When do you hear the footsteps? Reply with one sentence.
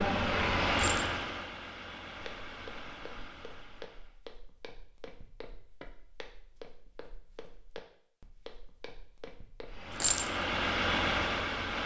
The footsteps can be heard from 2.1 to 9.9 s.